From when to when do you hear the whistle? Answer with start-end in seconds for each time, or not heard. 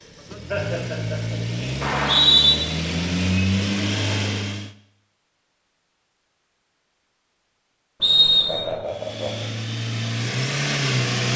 1.8-2.5, 8.0-8.7.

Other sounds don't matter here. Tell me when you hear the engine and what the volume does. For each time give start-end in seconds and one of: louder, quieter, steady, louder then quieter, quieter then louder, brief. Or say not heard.
0.0-4.7 louder
8.8-11.3 brief.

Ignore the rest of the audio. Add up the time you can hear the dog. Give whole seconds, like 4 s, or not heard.
not heard.